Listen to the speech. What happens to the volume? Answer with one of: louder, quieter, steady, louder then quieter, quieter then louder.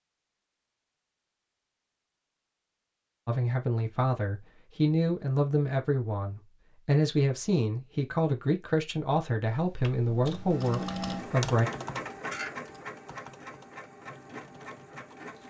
steady.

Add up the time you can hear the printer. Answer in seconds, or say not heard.
6 s.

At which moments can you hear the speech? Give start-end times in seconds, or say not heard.
3.2-11.7.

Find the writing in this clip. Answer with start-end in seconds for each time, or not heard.
not heard.